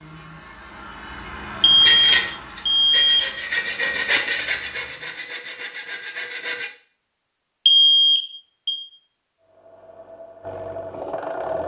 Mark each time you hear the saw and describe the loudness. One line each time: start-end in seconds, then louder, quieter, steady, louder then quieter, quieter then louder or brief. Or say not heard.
1.8-6.7 louder then quieter.